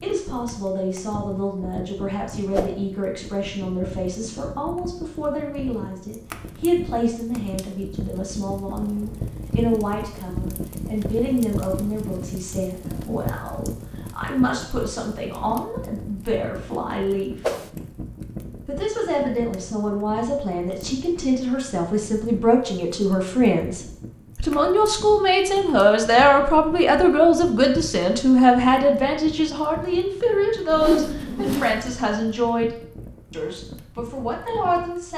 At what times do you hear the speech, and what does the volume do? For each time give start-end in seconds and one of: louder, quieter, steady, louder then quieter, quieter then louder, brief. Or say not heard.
0.0-17.4 steady
18.6-35.1 louder then quieter.